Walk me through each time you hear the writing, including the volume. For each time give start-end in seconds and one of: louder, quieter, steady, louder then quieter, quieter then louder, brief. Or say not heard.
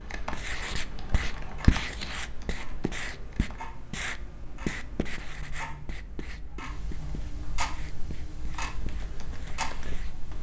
0.2-10.2 quieter.